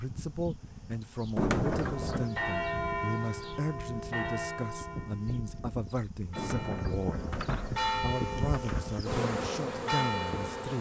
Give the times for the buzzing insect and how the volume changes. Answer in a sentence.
The buzzing insect can be heard from 0.0 to 10.7 s, getting louder.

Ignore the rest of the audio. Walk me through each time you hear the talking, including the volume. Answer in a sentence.
The talking can be heard from 0.0 to 7.2 s, at a steady volume; and briefly from 8.0 to 10.7 s.